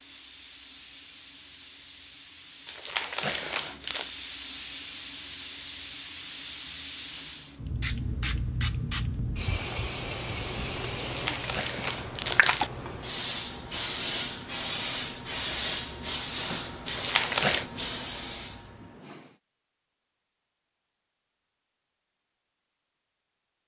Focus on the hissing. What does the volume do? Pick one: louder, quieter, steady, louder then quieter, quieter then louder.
louder.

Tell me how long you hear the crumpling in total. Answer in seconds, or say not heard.
4 s.